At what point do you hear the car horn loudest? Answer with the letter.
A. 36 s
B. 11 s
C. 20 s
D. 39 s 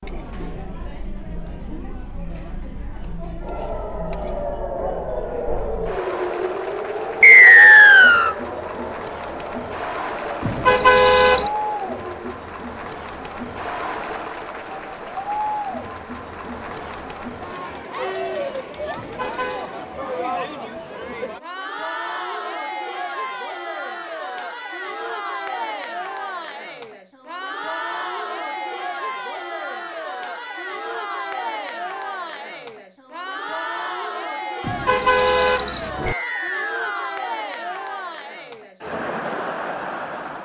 B.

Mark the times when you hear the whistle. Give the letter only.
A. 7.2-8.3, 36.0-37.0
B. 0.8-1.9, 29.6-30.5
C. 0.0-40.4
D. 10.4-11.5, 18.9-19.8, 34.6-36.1
A.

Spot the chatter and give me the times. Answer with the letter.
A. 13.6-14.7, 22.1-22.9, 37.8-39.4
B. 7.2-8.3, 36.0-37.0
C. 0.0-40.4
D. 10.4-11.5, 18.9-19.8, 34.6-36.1
C.